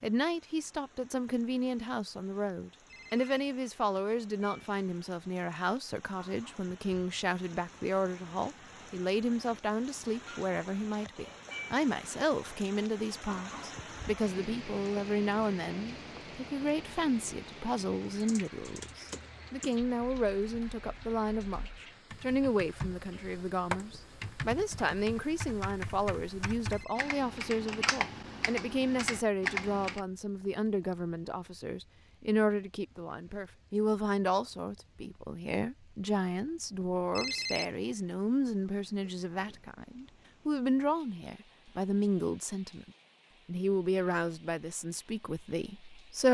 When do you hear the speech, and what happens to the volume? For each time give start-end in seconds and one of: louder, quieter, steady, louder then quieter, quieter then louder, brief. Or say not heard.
0.0-46.2 steady.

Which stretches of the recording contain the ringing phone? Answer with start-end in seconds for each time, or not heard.
2.9-3.4, 26.7-27.1, 37.1-37.6.